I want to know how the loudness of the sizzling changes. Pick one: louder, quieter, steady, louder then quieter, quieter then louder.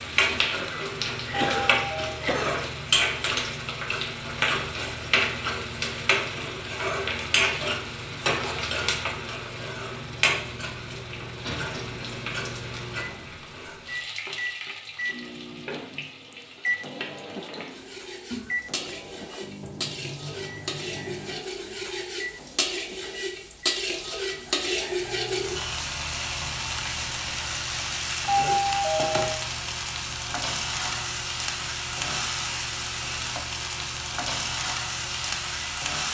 quieter then louder.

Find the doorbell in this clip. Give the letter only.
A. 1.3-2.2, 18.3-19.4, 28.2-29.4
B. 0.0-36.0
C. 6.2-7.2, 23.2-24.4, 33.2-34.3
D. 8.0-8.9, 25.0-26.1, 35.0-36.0
A.